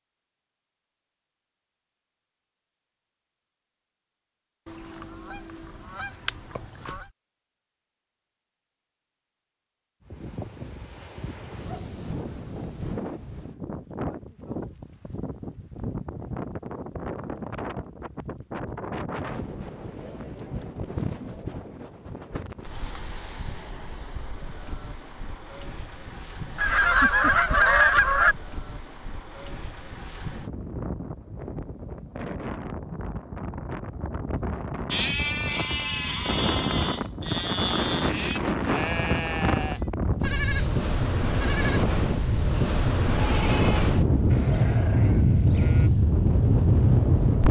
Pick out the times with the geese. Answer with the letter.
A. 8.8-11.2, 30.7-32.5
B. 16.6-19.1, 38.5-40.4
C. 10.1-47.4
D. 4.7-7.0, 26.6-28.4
D.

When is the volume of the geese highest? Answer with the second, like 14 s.
28 s.